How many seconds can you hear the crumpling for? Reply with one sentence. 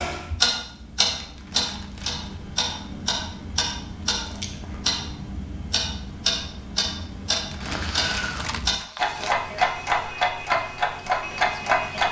You can hear the crumpling for 3 seconds altogether.